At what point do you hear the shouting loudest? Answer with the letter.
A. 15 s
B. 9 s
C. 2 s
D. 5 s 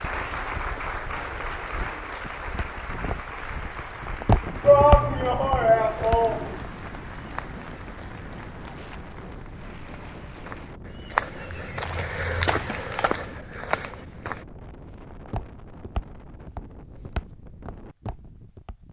D.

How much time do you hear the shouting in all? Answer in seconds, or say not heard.
2 s.